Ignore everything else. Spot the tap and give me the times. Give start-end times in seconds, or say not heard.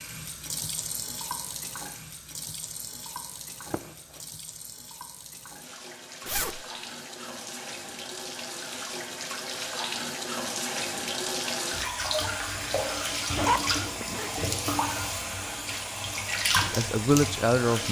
0.0-17.8.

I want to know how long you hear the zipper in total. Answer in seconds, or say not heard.
2 s.